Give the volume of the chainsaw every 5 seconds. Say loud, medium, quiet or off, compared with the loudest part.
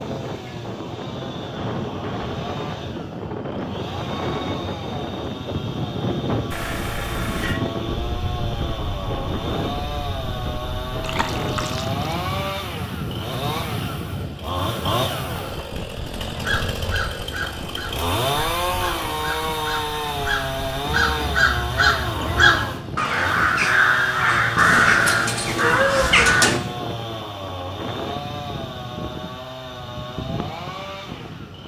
medium, medium, loud, loud, loud, medium, medium.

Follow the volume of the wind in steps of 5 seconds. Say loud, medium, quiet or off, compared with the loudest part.
loud, loud, loud, medium, medium, medium, medium.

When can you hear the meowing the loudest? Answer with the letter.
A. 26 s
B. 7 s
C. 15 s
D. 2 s
A.